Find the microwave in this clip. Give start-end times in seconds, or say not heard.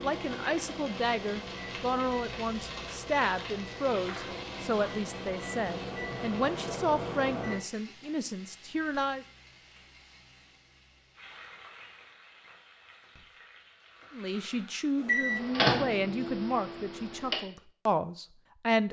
0.0-7.6, 14.9-17.4.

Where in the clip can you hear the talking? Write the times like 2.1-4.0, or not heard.
0.0-9.2, 14.1-18.8.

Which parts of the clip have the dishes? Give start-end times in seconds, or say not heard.
not heard.